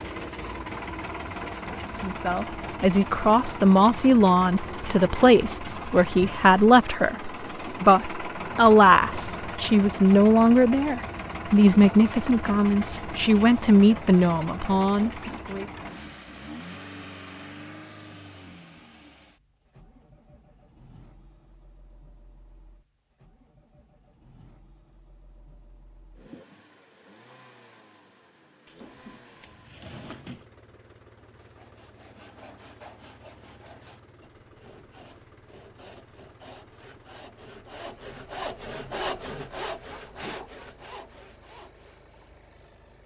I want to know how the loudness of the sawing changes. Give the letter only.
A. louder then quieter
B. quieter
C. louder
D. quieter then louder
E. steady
A.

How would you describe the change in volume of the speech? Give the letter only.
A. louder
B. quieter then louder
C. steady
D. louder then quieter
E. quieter
C.